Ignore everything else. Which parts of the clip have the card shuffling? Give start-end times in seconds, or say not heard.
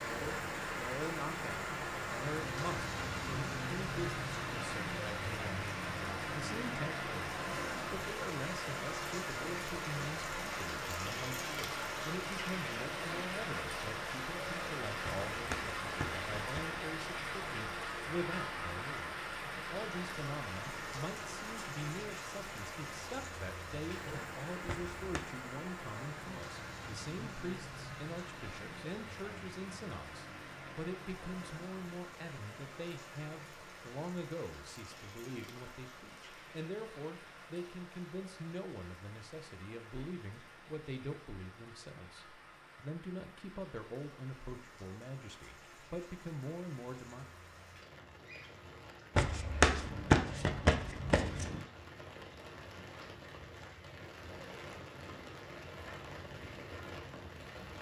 15.1-16.6, 24.6-25.2, 49.1-51.6.